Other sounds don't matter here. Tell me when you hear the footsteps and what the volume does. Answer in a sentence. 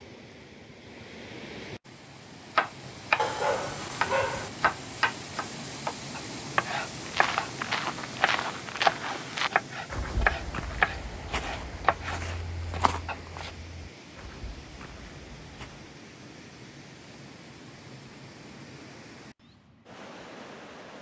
The footsteps can be heard from 6.9 to 15.9 s, getting quieter.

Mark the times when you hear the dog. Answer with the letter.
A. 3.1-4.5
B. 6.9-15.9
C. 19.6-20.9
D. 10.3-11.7
A.